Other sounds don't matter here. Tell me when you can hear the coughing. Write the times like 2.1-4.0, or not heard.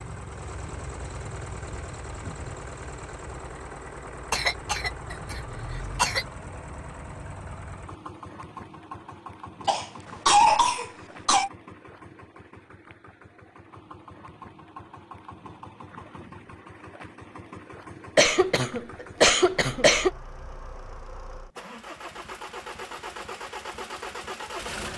4.3-6.2, 9.7-11.5, 18.1-20.1.